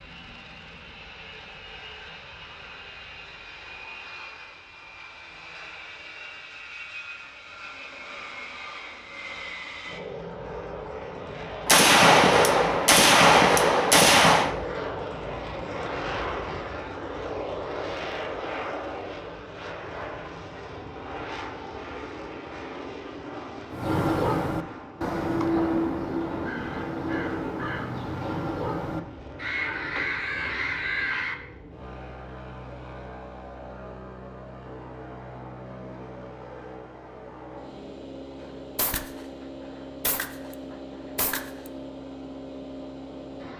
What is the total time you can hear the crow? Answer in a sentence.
You can hear the crow for 8 seconds altogether.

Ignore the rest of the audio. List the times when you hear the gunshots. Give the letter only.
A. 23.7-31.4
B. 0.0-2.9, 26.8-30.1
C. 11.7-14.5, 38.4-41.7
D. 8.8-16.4
C.